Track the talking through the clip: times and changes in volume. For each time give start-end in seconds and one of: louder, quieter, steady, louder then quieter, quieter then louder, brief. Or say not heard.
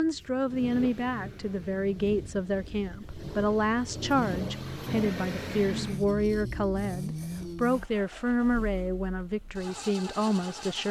0.0-10.8 steady.